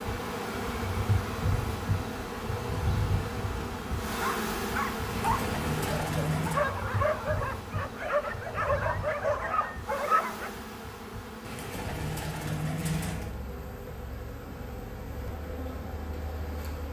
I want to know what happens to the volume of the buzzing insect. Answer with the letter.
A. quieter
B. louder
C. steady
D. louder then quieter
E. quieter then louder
A.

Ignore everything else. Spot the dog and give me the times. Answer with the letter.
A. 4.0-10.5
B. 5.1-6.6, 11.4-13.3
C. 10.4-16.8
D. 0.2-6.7
A.